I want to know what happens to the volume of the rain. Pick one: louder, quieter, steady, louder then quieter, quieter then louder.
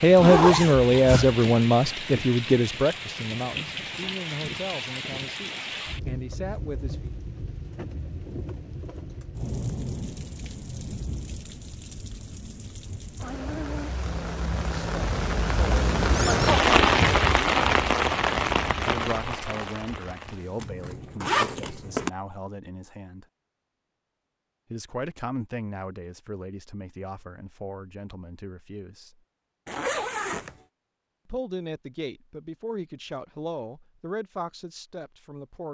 louder.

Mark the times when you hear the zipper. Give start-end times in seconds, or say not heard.
0.1-1.4, 20.6-22.1, 29.6-30.6.